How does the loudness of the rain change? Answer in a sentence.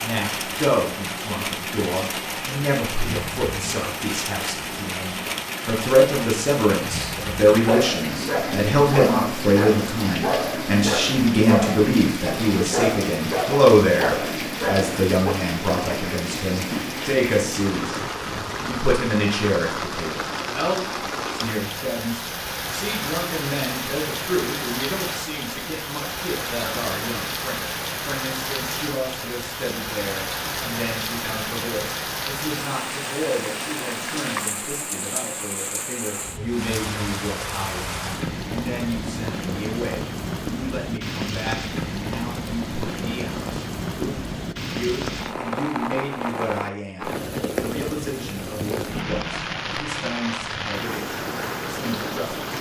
The volume of the rain stays about the same.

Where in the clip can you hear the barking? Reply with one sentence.
The barking can be heard from 7.7 to 15.3 s.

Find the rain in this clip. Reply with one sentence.
The rain can be heard from 0.0 to 52.5 s.